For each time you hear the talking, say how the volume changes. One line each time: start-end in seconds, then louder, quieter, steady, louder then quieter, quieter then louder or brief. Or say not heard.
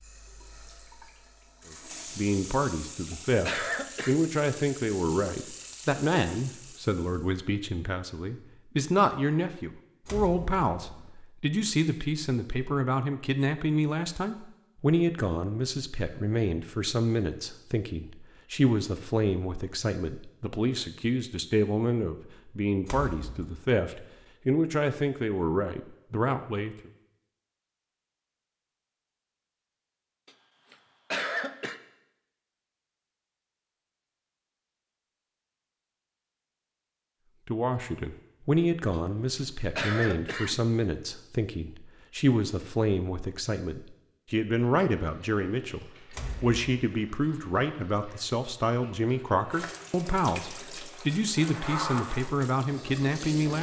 1.7-26.9 steady
37.5-53.5 steady.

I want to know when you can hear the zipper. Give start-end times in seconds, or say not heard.
not heard.